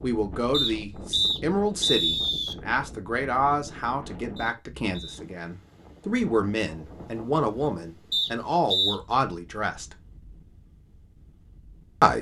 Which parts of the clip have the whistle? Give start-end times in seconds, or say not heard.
0.5-2.5, 4.3-5.2, 8.1-8.9.